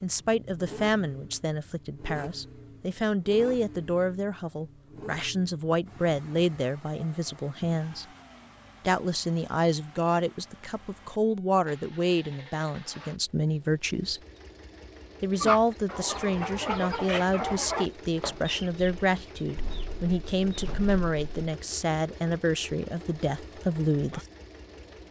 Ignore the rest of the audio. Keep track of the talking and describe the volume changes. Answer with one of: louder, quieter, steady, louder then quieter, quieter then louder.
steady.